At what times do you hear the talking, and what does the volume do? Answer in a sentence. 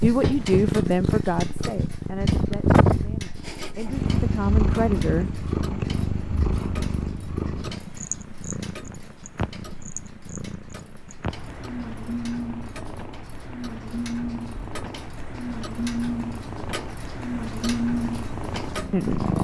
The talking can be heard from 0.0 to 5.3 s, getting quieter then louder; and briefly from 18.9 to 19.4 s.